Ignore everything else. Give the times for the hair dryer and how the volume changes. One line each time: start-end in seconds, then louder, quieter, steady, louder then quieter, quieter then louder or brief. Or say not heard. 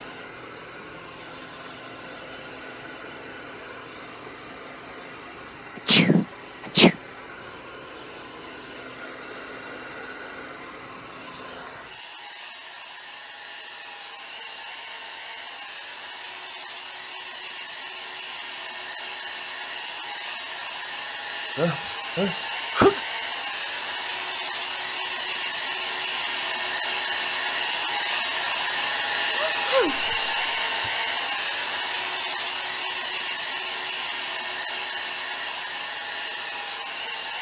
0.0-37.3 louder.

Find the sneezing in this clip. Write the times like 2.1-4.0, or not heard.
5.8-7.0, 21.6-23.0, 29.3-30.9.